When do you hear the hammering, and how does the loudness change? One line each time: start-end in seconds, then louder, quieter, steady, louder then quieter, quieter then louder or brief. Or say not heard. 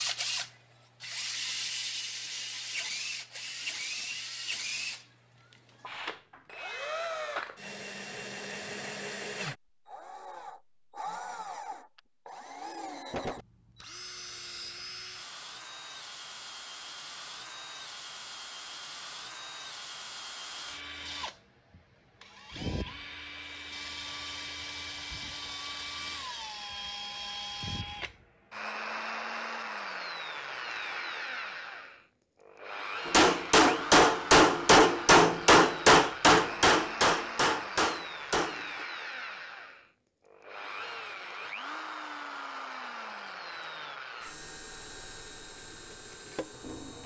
33.0-38.9 quieter.